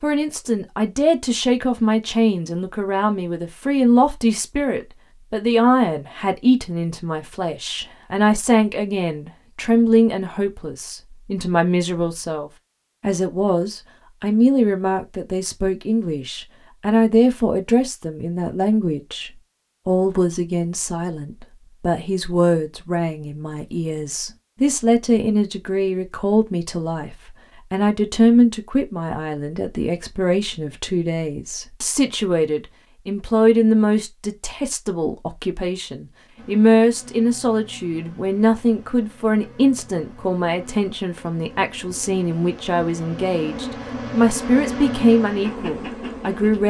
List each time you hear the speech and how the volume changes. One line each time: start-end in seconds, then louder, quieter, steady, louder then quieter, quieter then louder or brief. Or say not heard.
0.0-46.6 steady.